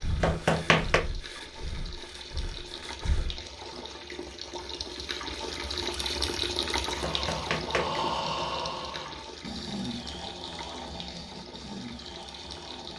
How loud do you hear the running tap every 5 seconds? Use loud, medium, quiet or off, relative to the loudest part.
medium, loud, medium.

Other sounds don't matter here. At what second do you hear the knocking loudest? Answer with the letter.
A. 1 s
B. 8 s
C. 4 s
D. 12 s
A.